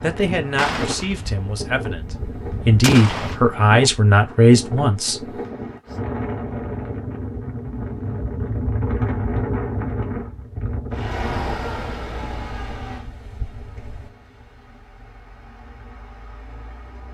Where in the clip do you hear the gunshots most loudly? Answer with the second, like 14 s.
3 s.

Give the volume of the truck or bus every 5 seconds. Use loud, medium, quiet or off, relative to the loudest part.
off, off, loud, quiet.